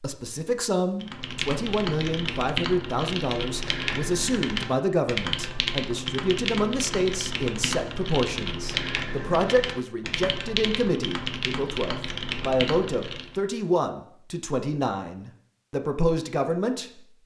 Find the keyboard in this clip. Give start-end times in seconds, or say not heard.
1.0-13.4.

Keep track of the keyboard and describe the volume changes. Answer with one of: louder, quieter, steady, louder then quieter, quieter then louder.
steady.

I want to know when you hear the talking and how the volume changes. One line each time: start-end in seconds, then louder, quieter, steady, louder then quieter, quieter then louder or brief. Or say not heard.
0.0-17.0 steady.